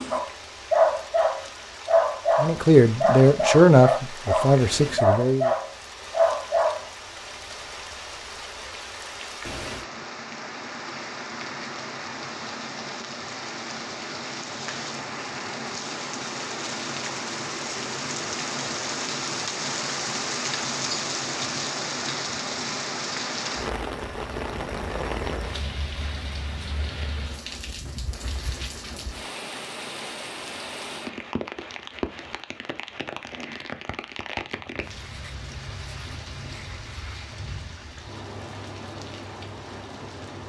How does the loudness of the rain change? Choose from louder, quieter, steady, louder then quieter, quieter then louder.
louder then quieter.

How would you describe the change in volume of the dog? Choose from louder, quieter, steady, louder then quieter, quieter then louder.
steady.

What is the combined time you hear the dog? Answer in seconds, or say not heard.
7 s.